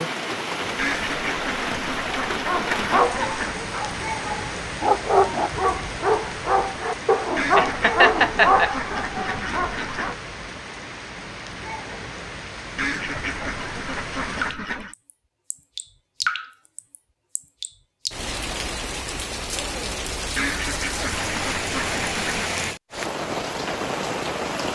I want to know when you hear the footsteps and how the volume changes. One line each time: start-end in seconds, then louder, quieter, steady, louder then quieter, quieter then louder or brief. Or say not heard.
not heard.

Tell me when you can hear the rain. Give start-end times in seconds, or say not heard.
0.0-24.7.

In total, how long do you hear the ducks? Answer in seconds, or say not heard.
10 s.